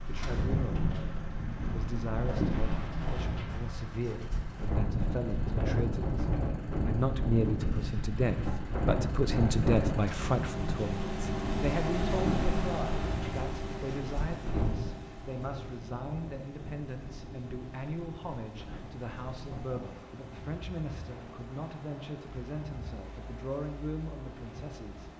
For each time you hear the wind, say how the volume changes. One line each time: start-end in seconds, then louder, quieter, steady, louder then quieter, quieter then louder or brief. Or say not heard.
0.0-25.1 quieter.